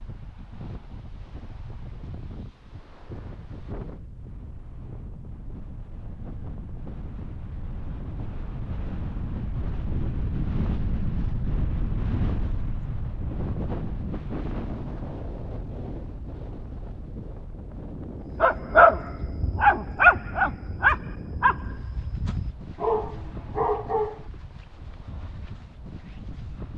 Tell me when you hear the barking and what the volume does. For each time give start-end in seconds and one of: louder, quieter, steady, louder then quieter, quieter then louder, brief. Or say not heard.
18.3-24.2 quieter then louder.